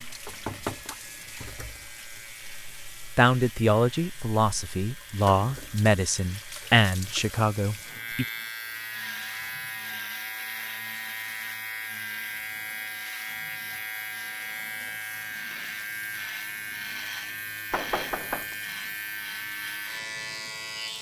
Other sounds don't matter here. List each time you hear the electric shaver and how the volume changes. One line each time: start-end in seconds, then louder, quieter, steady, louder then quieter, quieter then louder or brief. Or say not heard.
0.0-20.9 louder.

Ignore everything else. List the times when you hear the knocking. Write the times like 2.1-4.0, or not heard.
0.2-0.9, 17.7-18.6.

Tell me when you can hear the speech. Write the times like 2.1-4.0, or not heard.
3.1-8.2.